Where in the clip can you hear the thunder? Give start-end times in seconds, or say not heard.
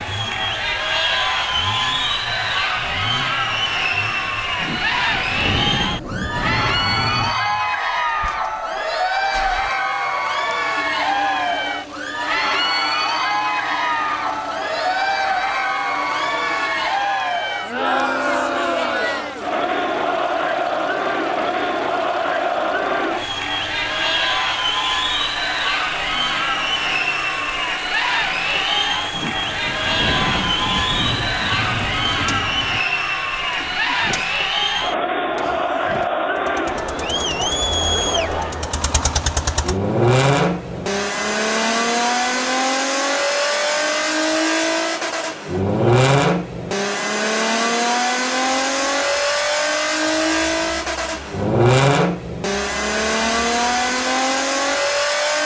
4.5-7.3, 29.1-32.8.